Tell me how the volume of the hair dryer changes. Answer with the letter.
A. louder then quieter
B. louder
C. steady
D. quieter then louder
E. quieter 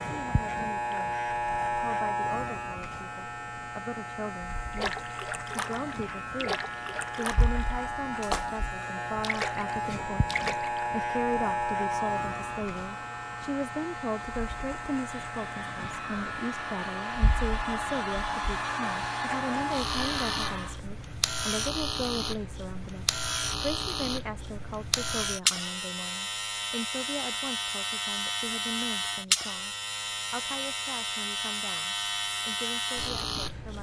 B.